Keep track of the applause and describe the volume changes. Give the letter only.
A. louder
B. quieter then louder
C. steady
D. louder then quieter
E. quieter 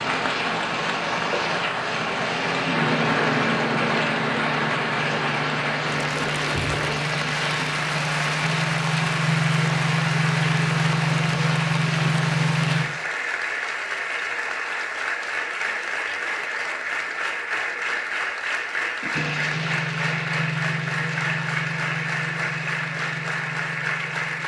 C.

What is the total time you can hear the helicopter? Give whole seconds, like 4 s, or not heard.
18 s.